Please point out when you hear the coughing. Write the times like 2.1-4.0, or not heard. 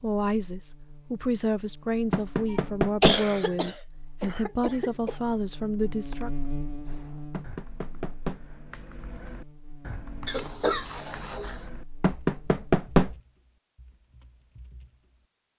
2.5-5.2, 10.2-11.6.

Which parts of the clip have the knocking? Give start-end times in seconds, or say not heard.
2.1-3.2, 7.3-8.4, 12.0-13.2.